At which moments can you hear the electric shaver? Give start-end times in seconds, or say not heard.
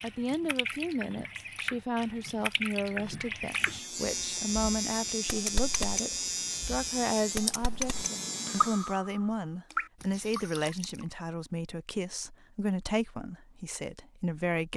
3.5-9.0.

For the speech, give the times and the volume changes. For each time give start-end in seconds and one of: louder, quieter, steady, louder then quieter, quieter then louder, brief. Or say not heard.
0.0-14.7 steady.